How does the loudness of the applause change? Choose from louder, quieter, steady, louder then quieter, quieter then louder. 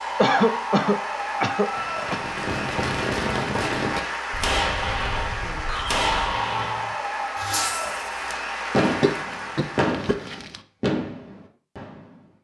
steady.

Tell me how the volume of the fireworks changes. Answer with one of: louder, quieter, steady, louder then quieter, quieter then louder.
steady.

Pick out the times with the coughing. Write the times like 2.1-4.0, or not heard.
0.1-2.2, 4.3-6.5, 8.8-10.6.